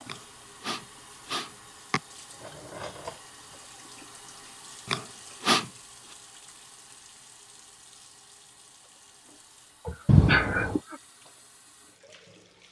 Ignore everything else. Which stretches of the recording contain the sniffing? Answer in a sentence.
The sniffing can be heard from 0.1 to 2.0 s, from 4.8 to 5.7 s and from 9.8 to 11.0 s.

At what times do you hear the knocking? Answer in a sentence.
The knocking can be heard from 10.1 to 10.8 s.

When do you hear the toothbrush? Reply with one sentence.
You can't hear the toothbrush here.